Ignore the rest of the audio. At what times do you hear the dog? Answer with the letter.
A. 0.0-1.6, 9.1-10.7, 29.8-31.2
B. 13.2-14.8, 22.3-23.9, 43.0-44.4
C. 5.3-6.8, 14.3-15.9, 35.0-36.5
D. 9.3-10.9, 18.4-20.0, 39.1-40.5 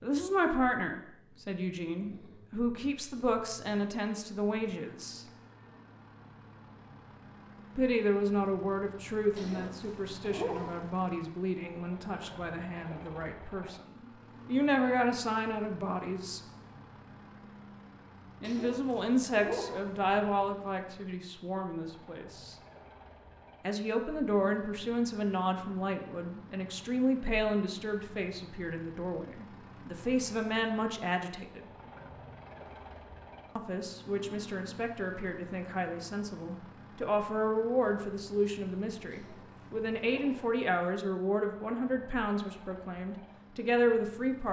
D.